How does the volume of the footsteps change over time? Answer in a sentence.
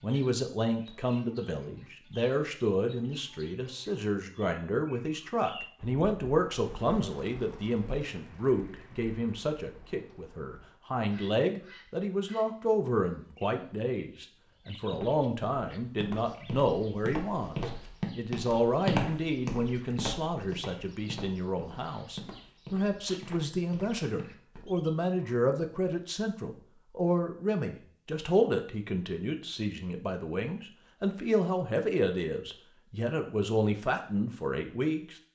The volume of the footsteps goes up, then down.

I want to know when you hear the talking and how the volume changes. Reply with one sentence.
You can hear the talking from 0.0 to 35.1 s, at a steady volume.